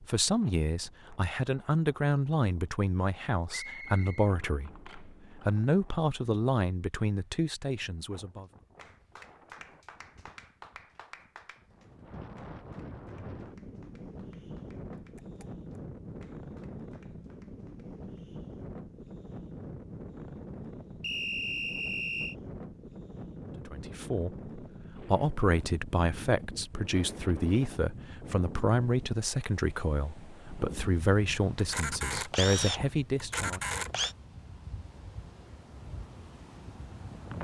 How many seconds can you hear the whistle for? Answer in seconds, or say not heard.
2 s.